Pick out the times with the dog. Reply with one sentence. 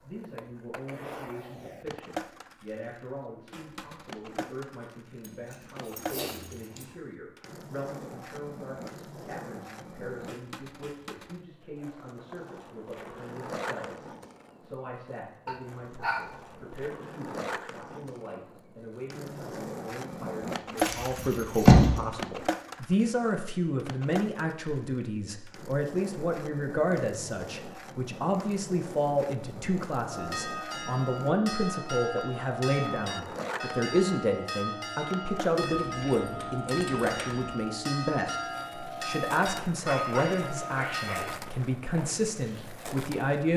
The dog can be heard from 15.4 to 16.8 s and from 39.8 to 41.4 s.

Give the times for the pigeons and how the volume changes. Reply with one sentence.
The pigeons can't be heard in this clip.